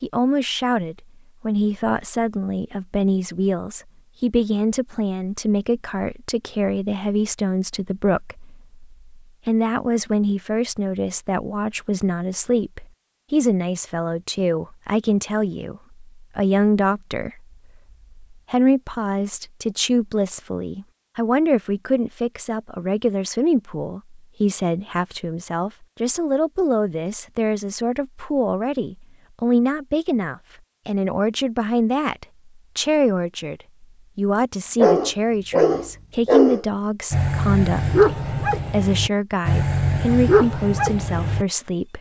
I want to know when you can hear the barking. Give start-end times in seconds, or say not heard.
34.8-41.5.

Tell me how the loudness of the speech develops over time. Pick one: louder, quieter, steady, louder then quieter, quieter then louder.
steady.